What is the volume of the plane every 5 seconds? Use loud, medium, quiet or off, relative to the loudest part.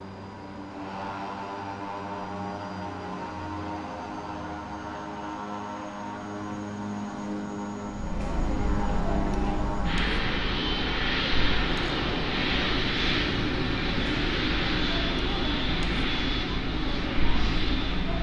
medium, medium, loud, loud.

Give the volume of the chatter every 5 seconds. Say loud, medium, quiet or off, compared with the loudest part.
off, loud, loud, loud.